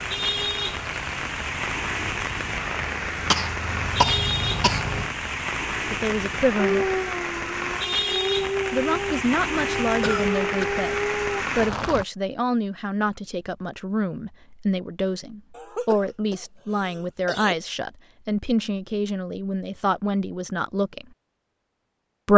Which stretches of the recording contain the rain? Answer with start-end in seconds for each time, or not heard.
0.0-12.1.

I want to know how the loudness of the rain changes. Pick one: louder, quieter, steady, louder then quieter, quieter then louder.
steady.